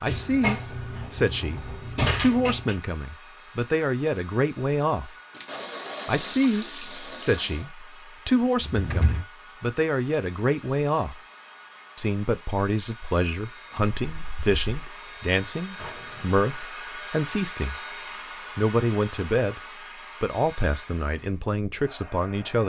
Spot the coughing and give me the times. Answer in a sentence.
You can't hear the coughing here.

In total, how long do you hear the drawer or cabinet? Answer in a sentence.
The drawer or cabinet can be heard for 4 seconds in total.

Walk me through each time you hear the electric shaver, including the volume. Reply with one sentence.
The electric shaver can't be heard in this clip.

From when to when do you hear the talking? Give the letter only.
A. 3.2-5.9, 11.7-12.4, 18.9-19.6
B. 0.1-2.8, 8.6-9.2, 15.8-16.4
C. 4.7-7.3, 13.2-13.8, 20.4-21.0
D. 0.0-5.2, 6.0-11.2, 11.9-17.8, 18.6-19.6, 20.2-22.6
D.